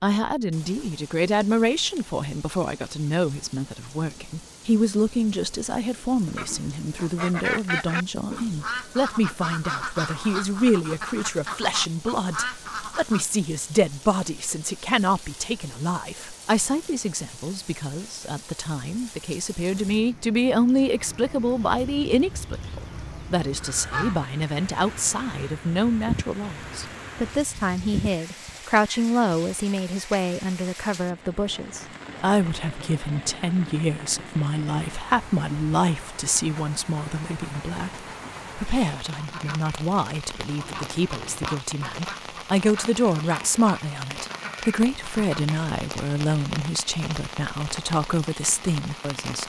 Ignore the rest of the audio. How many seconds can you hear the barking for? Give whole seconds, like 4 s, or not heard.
not heard.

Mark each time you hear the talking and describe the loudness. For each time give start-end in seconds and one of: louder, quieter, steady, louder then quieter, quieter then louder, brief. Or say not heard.
0.0-49.4 steady.